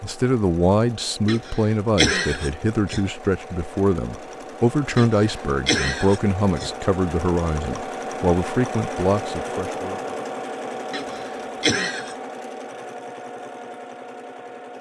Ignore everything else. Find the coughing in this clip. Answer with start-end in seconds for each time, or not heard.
1.2-3.0, 5.0-6.7, 10.9-12.2.